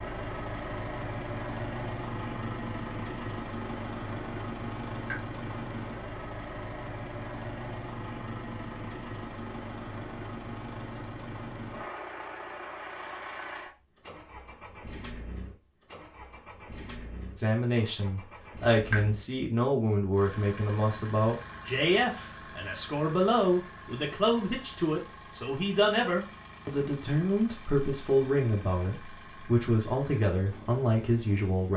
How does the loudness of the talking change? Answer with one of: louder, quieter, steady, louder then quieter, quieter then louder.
steady.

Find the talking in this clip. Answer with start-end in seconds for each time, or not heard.
17.4-31.7.